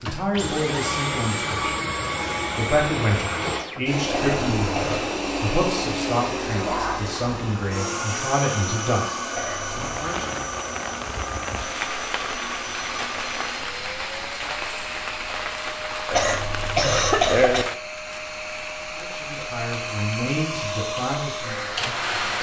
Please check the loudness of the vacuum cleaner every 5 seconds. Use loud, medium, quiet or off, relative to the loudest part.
loud, loud, medium, medium, loud.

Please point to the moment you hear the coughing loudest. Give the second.
17 s.